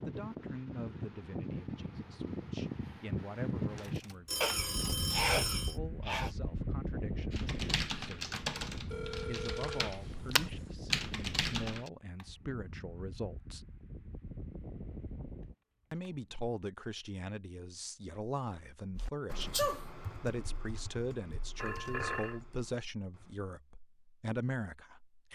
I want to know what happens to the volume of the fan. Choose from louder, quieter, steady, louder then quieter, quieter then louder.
quieter.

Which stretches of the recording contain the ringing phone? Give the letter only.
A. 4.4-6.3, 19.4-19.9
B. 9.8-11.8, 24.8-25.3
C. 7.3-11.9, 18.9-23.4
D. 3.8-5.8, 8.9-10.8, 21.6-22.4
D.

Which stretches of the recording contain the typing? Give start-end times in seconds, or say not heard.
7.3-11.9, 18.9-23.4.